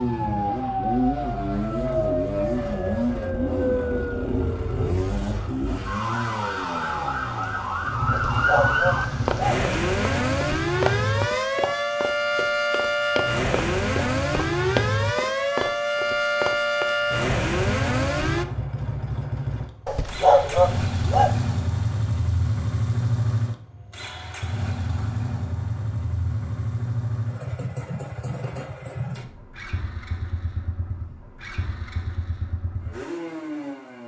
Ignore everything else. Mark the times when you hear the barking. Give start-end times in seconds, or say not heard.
8.1-9.7, 19.9-21.4.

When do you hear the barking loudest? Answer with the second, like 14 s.
20 s.